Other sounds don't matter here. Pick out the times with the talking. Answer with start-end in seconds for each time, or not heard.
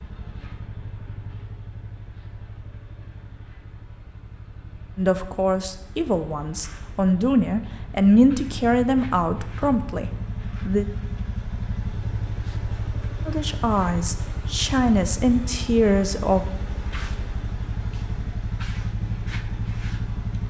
5.0-10.8, 13.2-16.4.